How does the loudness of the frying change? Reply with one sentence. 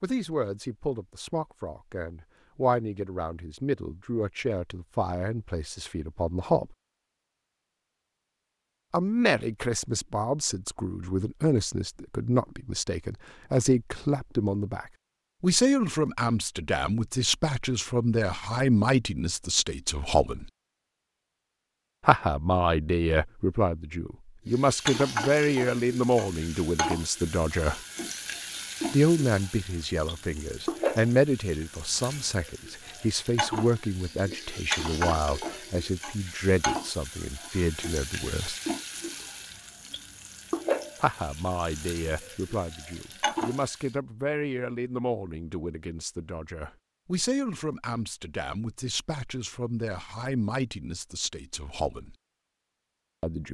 The volume of the frying stays about the same.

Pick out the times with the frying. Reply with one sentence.
You can hear the frying from 24.4 to 43.9 s.